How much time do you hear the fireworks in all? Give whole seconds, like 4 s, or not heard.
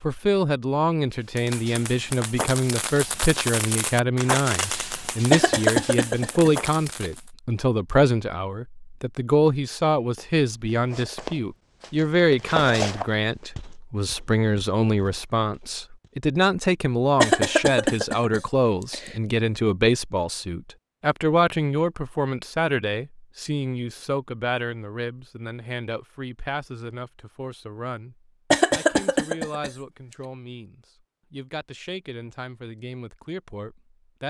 6 s.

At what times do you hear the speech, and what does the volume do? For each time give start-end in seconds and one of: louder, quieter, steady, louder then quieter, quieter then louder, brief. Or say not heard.
0.0-34.2 quieter.